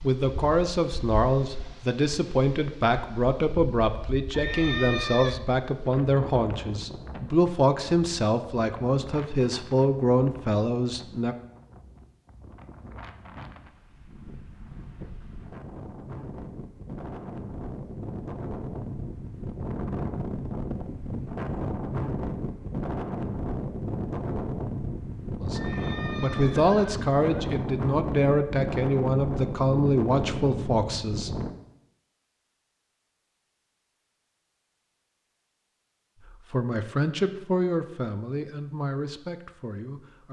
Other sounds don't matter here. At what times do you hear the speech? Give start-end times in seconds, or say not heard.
0.0-11.3, 25.4-31.3, 36.2-40.2.